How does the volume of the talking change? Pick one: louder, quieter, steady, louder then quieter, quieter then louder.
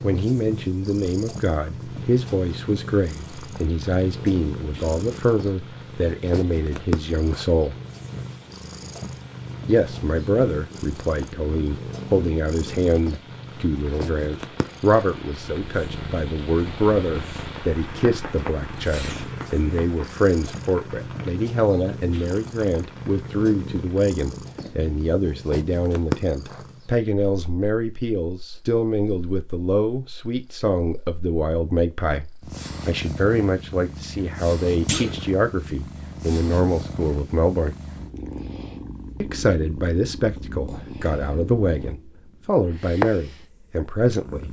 steady.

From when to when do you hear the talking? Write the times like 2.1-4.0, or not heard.
0.0-7.8, 9.7-37.8, 39.2-44.4.